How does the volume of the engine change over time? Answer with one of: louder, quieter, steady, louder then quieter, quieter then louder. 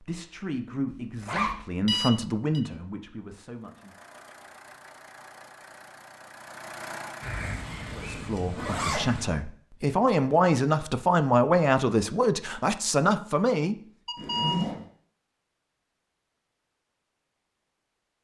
louder.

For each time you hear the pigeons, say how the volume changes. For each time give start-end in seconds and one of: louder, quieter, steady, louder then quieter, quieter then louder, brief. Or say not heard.
not heard.